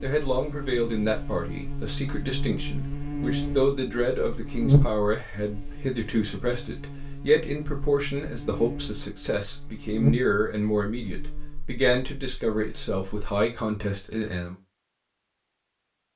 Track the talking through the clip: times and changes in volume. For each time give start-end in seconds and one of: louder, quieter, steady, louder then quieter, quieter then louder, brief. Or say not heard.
0.0-14.6 steady.